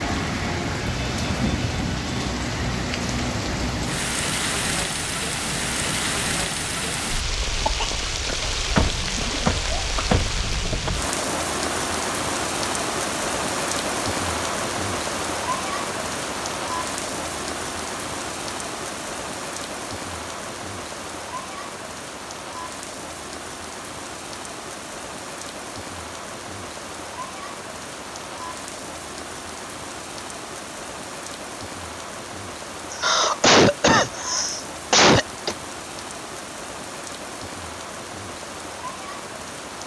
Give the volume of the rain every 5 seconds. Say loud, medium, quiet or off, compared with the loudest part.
loud, loud, loud, loud, medium, medium, medium, medium.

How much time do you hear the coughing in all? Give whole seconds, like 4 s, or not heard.
5 s.